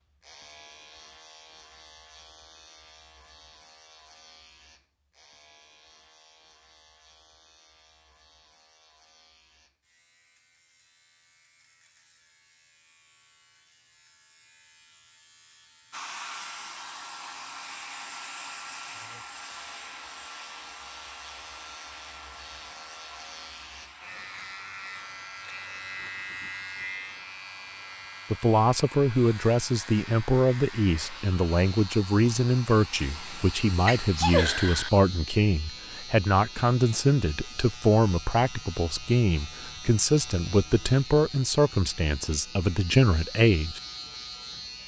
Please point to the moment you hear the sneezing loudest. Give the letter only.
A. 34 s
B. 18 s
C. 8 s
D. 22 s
A.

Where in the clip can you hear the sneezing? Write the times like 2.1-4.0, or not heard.
33.0-34.9.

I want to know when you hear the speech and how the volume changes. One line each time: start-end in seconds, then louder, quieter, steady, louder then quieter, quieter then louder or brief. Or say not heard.
28.3-43.8 steady.